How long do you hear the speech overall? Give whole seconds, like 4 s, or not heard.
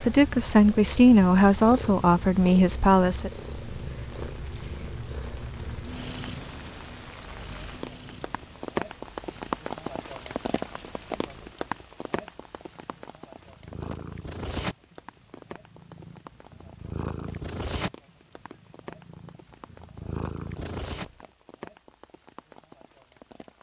3 s.